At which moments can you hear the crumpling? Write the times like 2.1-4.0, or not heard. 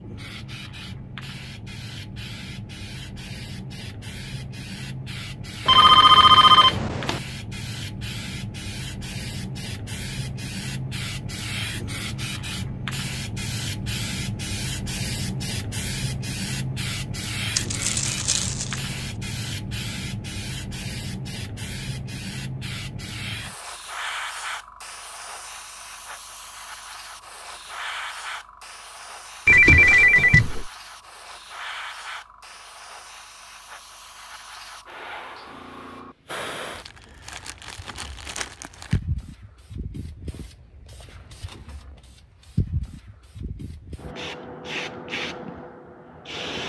17.6-18.9, 36.8-39.0.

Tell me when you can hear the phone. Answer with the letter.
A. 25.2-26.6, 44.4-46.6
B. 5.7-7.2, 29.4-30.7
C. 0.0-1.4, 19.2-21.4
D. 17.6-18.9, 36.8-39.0
B.